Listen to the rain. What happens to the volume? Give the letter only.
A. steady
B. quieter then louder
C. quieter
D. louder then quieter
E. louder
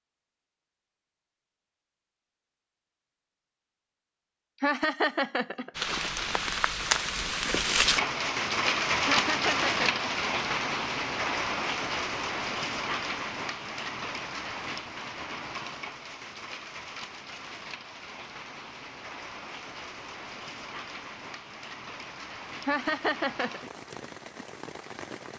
C.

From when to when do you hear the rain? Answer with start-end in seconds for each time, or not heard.
5.8-25.3.